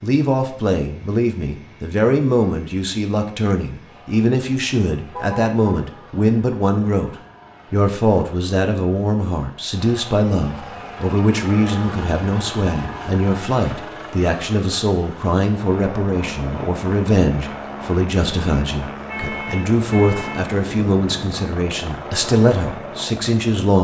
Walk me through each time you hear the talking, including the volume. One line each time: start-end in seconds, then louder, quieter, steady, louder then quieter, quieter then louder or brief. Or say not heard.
0.0-23.7 steady.